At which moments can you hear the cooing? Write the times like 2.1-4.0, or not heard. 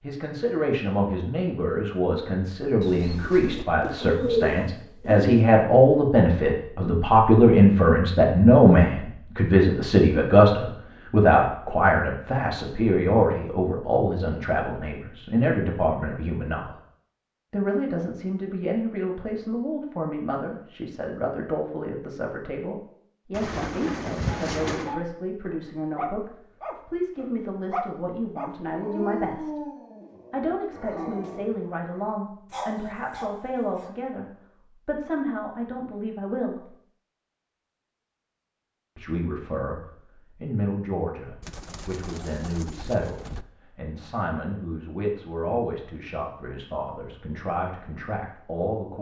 2.8-5.5, 23.3-24.9, 41.4-43.5.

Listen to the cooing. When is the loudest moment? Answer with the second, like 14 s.
4 s.